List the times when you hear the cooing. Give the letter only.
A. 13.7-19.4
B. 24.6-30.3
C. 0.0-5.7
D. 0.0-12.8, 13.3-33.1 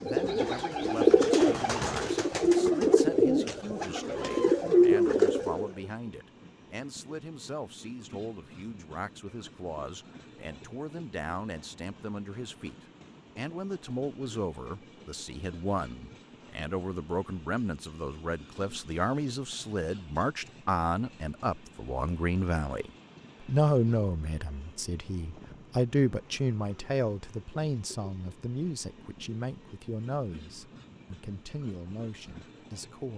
C.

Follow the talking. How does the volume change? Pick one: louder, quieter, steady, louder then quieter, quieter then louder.
louder then quieter.